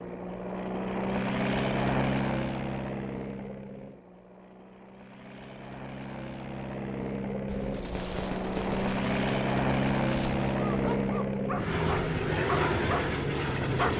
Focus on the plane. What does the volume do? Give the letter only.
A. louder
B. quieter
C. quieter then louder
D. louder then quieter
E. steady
C.